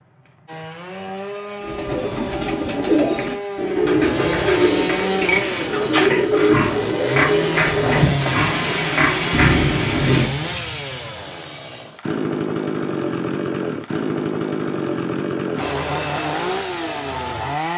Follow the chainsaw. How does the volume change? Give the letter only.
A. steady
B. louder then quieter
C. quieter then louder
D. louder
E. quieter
D.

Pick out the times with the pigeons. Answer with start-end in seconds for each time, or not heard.
1.6-8.5.